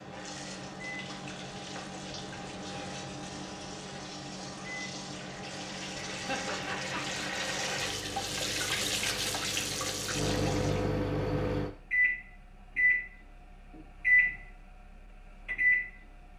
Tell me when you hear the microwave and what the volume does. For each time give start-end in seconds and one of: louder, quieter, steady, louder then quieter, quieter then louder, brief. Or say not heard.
0.0-16.3 louder.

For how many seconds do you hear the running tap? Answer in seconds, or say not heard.
11 s.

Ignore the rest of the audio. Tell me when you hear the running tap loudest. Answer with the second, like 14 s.
9 s.